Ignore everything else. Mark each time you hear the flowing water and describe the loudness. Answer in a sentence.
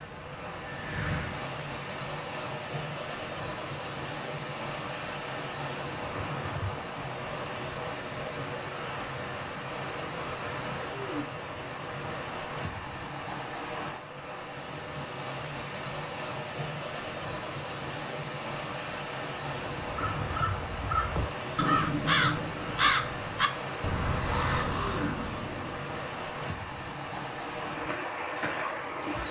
You can hear the flowing water from 0.0 to 29.2 s, at a steady volume.